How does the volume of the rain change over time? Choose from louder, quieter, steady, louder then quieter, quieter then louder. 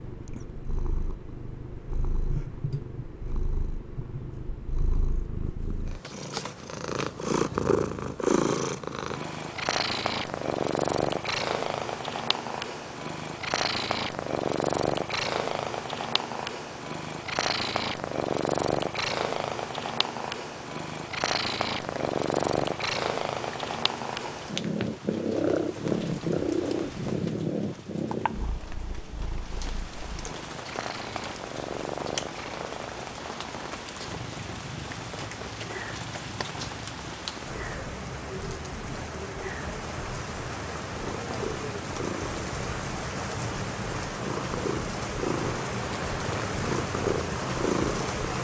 louder.